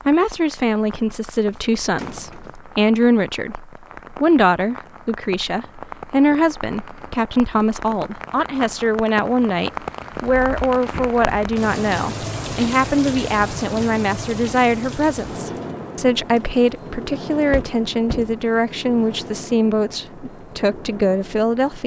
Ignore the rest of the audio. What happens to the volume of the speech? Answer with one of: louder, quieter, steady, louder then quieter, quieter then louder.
steady.